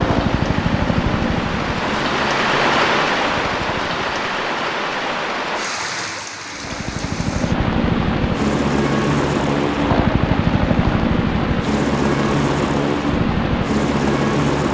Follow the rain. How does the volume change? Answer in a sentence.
The volume of the rain goes down.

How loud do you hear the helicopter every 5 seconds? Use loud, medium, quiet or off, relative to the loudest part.
medium, loud, loud.